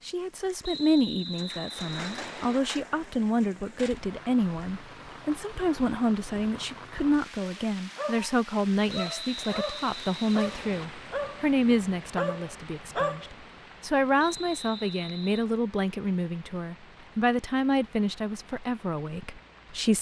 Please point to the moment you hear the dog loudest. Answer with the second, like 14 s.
13 s.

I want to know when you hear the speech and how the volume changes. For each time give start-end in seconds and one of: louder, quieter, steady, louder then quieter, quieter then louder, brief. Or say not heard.
0.1-19.9 steady.